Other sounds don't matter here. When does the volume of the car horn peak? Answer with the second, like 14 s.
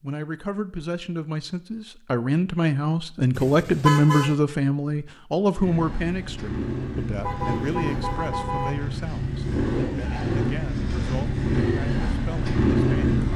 4 s.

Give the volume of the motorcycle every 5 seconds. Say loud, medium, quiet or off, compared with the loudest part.
off, medium, loud.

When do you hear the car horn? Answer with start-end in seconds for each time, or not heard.
3.3-4.3, 7.2-8.7.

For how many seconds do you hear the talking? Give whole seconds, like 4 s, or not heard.
13 s.